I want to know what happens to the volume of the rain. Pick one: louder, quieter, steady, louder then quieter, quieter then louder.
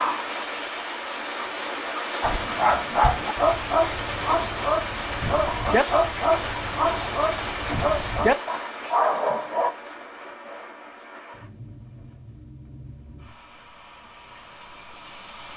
quieter.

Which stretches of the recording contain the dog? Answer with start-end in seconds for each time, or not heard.
2.2-9.8.